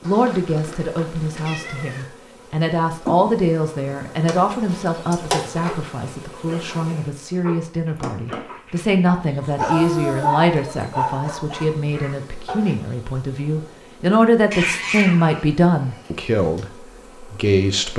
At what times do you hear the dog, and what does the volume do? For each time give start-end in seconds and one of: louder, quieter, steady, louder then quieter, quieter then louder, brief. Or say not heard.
5.7-12.8 louder then quieter.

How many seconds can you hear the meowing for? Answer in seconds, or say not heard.
4 s.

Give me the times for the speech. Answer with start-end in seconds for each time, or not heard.
0.0-17.9.